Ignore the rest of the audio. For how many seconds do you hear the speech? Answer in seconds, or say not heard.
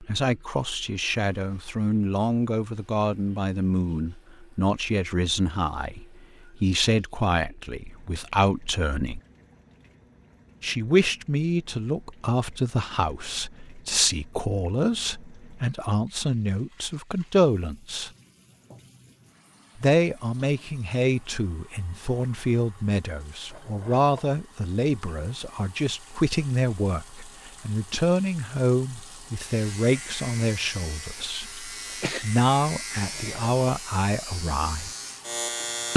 32 s.